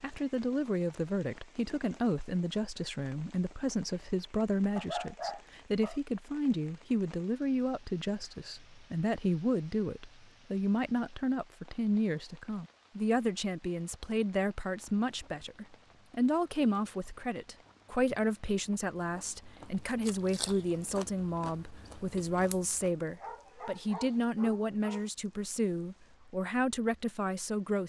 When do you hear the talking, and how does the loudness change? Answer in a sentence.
The talking can be heard from 0.0 to 27.8 s, at a steady volume.